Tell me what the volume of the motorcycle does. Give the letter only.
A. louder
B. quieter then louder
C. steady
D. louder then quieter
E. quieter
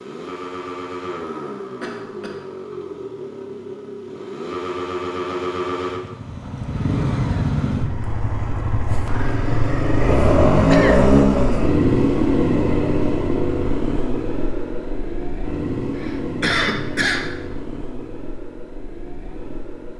D.